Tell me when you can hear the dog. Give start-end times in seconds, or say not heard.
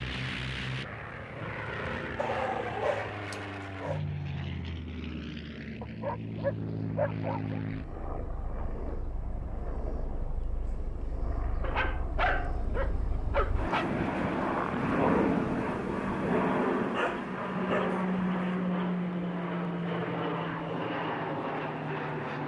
2.1-4.0, 5.8-7.6, 11.6-13.8, 16.9-18.1.